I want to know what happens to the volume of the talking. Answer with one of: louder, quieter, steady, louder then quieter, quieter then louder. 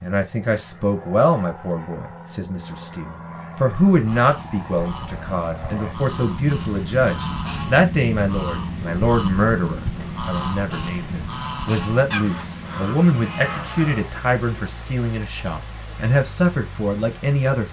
steady.